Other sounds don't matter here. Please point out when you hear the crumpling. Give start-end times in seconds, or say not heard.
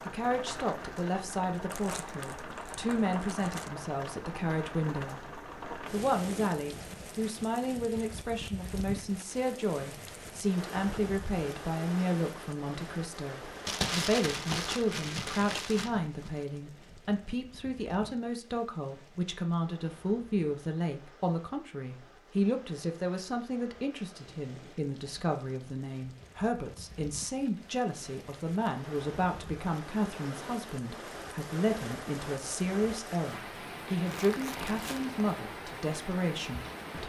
1.6-3.7, 13.7-16.3, 34.0-35.1.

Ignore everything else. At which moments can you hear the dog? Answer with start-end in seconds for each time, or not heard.
not heard.